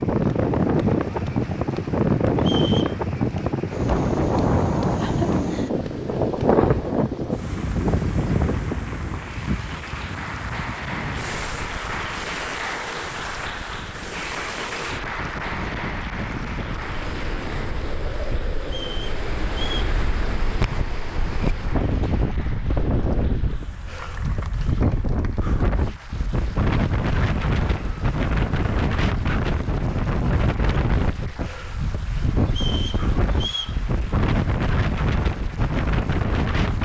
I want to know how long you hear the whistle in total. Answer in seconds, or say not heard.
3 s.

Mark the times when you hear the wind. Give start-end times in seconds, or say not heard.
0.0-36.8.